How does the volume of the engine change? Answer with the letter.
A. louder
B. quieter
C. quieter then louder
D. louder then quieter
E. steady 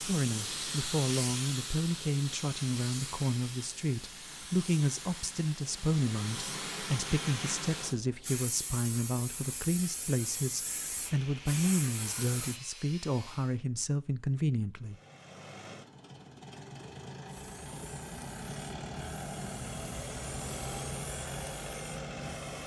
A.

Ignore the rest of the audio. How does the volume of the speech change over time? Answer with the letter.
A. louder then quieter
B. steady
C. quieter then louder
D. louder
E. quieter
B.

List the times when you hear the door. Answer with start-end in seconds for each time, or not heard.
not heard.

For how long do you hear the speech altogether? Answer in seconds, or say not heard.
15 s.